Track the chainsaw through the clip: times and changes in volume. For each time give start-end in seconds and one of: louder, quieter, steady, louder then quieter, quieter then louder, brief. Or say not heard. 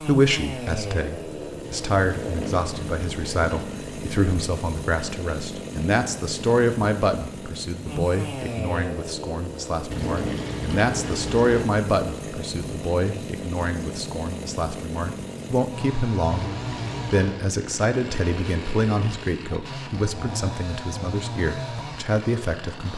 0.0-22.9 steady.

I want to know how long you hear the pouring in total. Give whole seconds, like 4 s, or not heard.
5 s.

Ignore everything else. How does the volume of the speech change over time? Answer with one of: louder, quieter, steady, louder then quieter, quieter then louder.
steady.